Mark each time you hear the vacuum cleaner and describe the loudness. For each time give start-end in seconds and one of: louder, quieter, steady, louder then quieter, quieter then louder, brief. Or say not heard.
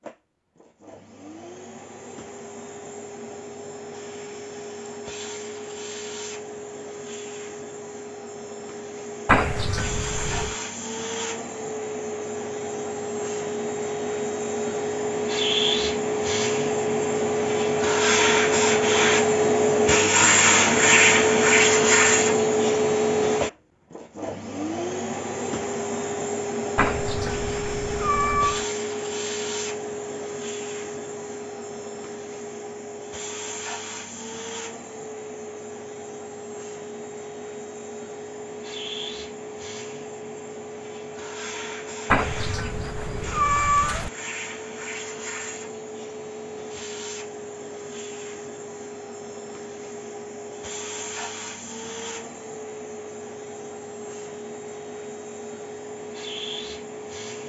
0.0-57.4 louder then quieter.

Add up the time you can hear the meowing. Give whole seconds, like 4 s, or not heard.
5 s.